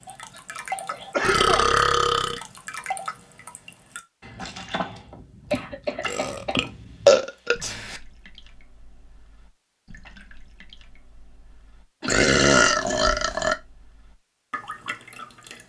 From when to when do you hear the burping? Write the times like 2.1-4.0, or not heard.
1.2-2.4, 6.0-8.0, 12.1-13.6.